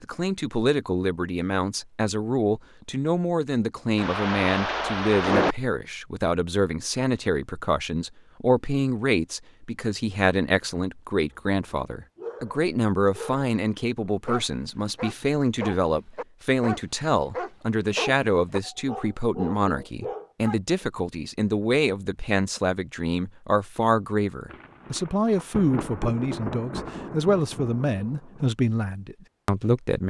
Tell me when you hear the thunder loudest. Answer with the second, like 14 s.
5 s.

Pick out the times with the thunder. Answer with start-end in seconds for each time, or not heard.
4.0-5.5, 24.5-28.2.